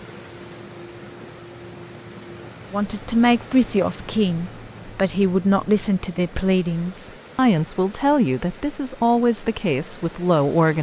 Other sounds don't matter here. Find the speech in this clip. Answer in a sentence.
The speech can be heard from 2.7 to 10.7 s.